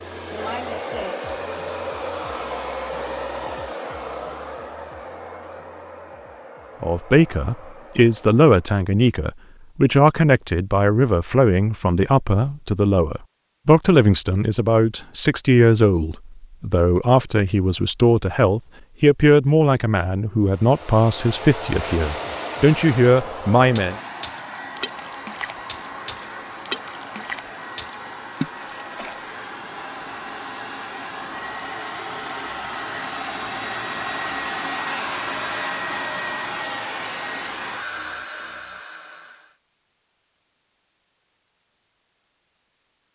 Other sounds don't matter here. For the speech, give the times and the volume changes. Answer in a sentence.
You can hear the speech from 6.8 to 23.9 s, at a steady volume.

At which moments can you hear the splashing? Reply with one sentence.
You can hear the splashing from 21.8 to 29.2 s.